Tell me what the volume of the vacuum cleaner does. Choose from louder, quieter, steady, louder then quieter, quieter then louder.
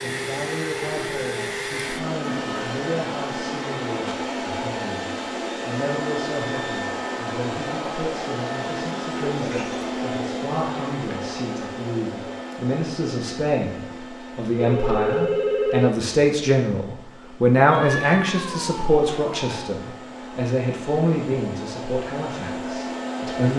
quieter then louder.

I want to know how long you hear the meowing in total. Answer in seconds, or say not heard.
3 s.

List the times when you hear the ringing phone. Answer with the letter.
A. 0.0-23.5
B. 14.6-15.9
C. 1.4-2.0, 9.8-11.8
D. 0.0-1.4
B.